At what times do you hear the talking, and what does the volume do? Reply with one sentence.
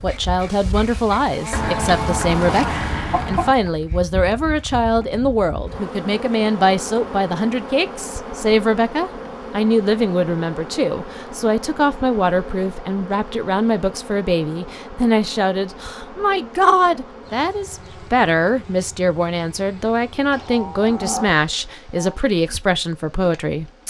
You can hear the talking from 0.0 to 23.8 s, at a steady volume.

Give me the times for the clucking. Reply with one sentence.
You can hear the clucking from 1.5 to 3.5 s.